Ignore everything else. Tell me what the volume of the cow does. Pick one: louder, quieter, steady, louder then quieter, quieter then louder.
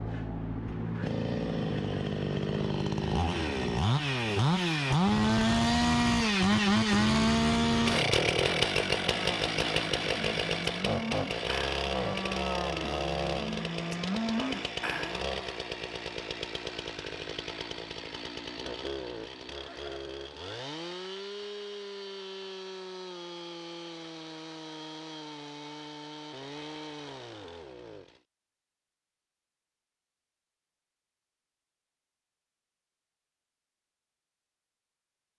louder.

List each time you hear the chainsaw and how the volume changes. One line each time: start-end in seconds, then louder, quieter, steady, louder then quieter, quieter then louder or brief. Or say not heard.
0.0-28.2 quieter.